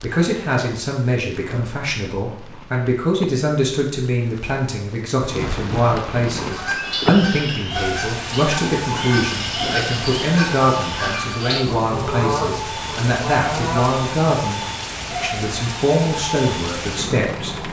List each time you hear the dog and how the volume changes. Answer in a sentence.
You can't hear the dog here.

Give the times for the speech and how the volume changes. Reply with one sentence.
The speech can be heard from 0.0 to 17.6 s, at a steady volume.